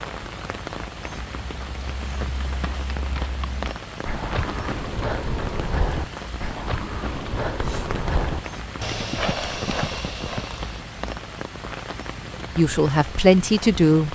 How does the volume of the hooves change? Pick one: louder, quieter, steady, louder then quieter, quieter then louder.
louder.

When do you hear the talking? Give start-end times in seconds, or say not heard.
12.6-14.1.